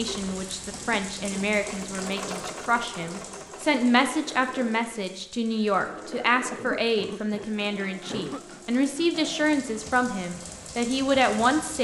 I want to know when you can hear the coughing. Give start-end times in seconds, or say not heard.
0.7-1.4, 6.5-8.4.